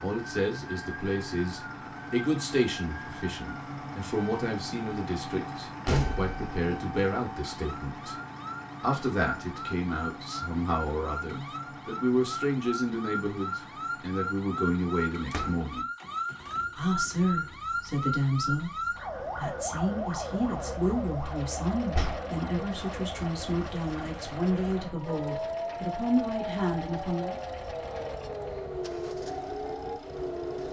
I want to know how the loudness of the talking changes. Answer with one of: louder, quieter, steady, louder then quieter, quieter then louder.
steady.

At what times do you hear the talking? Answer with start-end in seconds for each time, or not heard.
0.0-8.2, 8.8-15.8, 16.8-27.4.